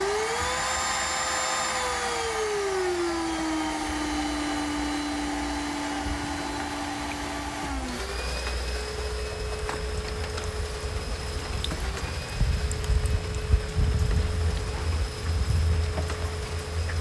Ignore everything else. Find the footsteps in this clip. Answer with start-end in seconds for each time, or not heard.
not heard.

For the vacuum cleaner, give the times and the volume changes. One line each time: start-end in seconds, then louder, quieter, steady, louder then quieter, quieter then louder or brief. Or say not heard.
0.0-16.9 quieter.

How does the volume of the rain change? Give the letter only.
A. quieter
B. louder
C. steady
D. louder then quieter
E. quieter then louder
B.